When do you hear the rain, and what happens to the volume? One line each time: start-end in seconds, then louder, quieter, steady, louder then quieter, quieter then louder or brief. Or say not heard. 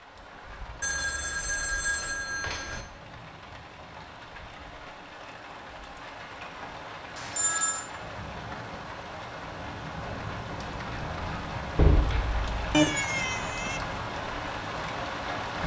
0.0-15.6 louder.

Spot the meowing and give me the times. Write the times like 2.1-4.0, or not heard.
12.7-13.8.